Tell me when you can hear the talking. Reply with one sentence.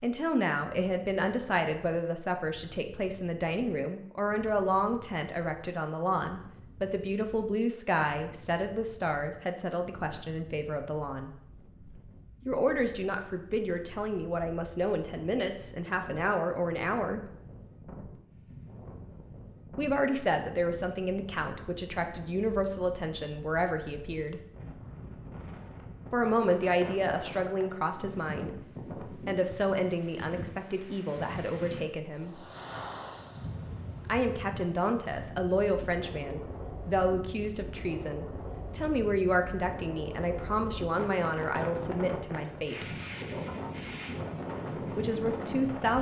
The talking can be heard from 0.0 to 11.3 s, from 12.4 to 17.2 s, from 19.8 to 24.4 s, from 26.1 to 32.4 s, from 34.0 to 42.9 s and from 44.9 to 45.9 s.